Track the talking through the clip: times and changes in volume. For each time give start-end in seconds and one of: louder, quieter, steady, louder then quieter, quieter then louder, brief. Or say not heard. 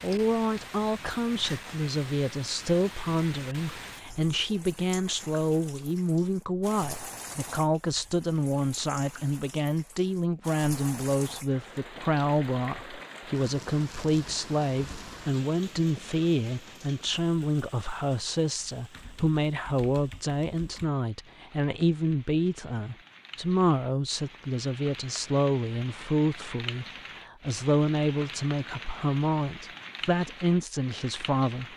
0.0-31.6 steady.